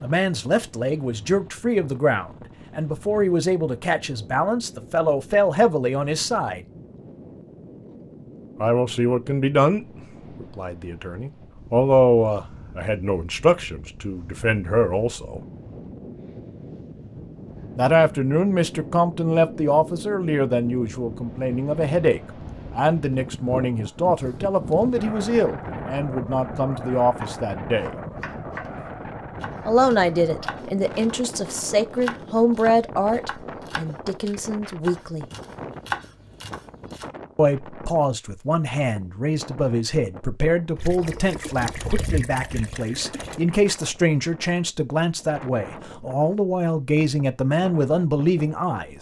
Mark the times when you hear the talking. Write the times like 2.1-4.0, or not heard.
0.0-6.7, 8.6-15.4, 17.8-27.9, 29.6-35.2, 37.4-48.9.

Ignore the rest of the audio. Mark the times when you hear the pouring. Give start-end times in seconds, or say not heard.
40.8-43.4.